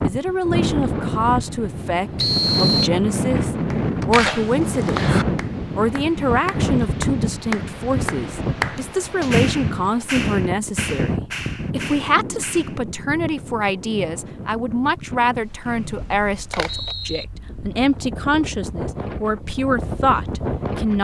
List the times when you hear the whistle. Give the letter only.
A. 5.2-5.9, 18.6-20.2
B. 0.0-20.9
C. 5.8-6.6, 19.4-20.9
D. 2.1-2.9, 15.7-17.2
D.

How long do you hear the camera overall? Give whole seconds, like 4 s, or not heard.
3 s.